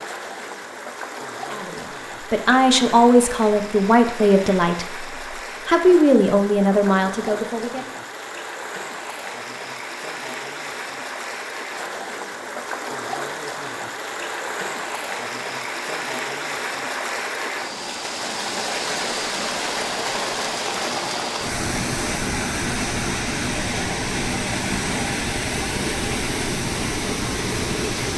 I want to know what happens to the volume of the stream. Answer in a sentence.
The volume of the stream goes up.